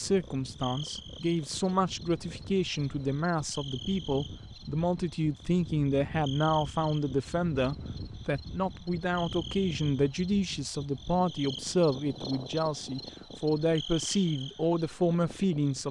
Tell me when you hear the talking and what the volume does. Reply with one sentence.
You can hear the talking from 0.0 to 15.8 s, at a steady volume.